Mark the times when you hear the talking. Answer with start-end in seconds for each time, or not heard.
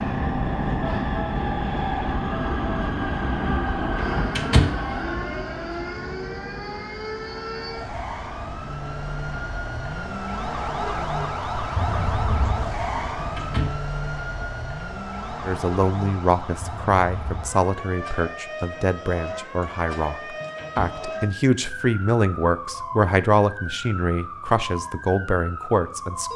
15.4-26.3.